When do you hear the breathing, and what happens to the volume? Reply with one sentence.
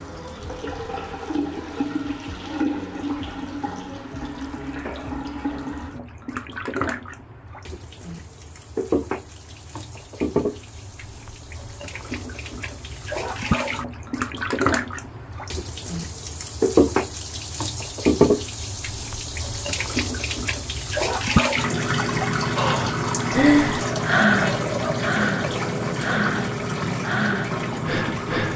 The breathing can be heard from 22.6 to 28.5 s, getting quieter.